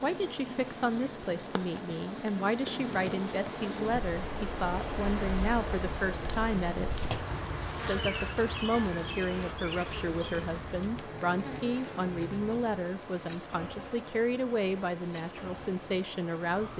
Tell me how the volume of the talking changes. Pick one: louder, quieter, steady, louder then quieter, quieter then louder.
steady.